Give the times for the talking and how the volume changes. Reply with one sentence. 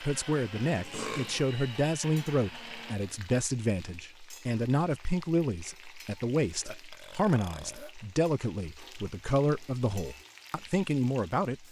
The talking can be heard from 0.0 to 11.6 s, at a steady volume.